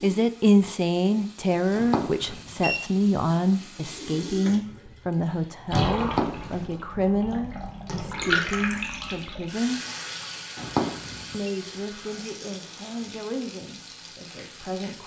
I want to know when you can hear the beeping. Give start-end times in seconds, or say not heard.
1.8-2.8, 6.0-6.7, 10.6-11.5.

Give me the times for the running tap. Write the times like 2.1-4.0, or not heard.
0.0-15.0.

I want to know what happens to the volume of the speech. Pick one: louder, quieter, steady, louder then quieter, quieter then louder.
quieter.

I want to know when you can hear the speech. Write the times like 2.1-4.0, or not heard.
0.0-9.8, 11.3-15.0.